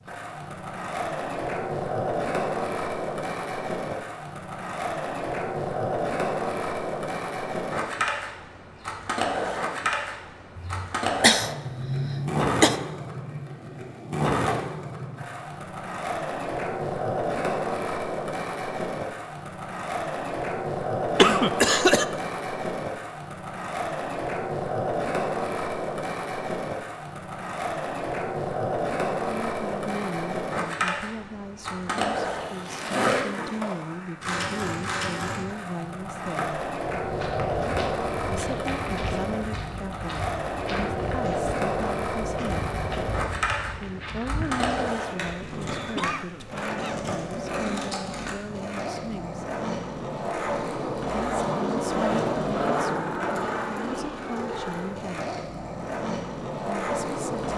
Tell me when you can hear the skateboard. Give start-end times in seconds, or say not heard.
0.0-57.5.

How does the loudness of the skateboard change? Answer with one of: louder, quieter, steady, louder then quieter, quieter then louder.
steady.